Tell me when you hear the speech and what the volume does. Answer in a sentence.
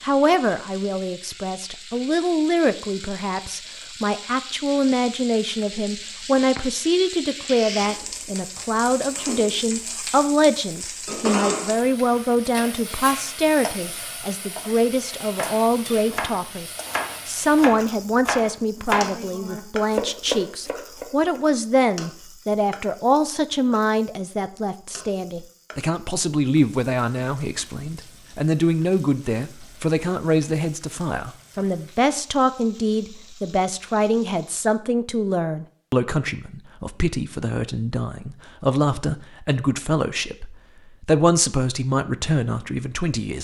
You can hear the speech from 0.0 to 43.4 s, at a steady volume.